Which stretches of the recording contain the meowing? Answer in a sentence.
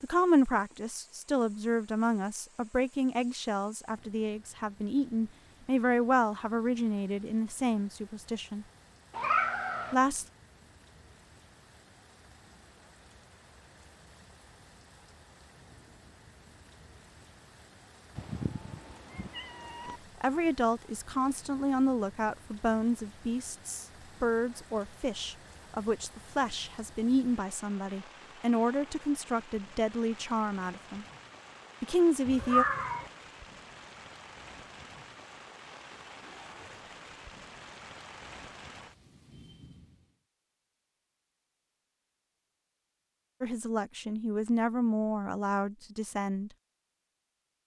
The meowing can be heard from 9.1 to 9.9 s, from 18.1 to 20.0 s and from 32.2 to 33.1 s.